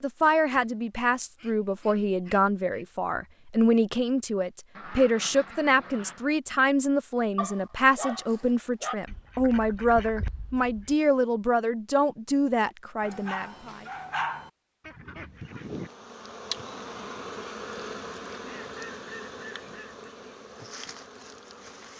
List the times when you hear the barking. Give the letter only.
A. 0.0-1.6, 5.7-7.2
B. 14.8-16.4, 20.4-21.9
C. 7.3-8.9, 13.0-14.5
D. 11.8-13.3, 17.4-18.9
C.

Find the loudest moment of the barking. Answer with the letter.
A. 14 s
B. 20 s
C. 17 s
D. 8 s
A.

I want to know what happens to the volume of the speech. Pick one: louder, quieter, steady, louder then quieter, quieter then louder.
steady.